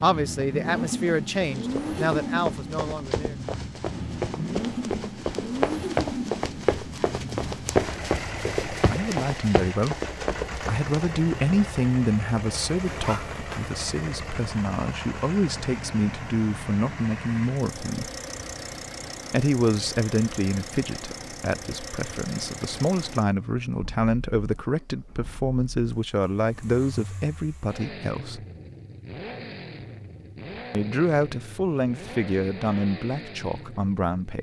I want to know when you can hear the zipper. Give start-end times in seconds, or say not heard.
12.8-13.7.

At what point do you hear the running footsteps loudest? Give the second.
8 s.